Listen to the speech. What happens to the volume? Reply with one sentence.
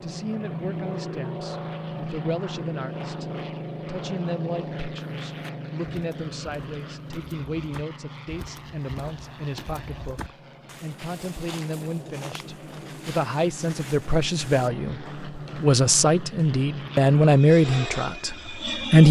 The volume of the speech goes up.